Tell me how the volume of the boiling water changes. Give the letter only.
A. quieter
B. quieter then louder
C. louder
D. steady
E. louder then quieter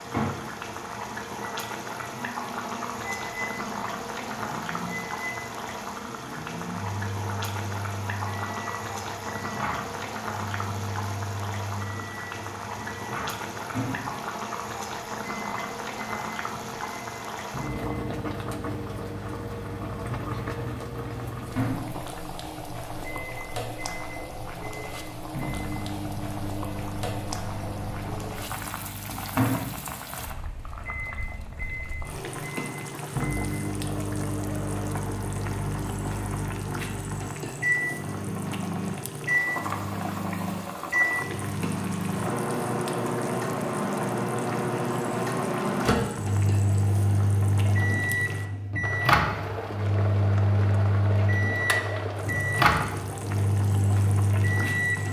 D.